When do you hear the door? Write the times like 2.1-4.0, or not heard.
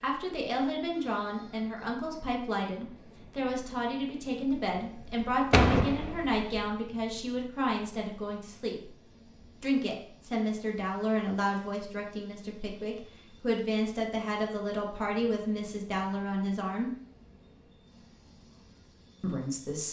5.5-6.5.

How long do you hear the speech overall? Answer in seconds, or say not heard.
17 s.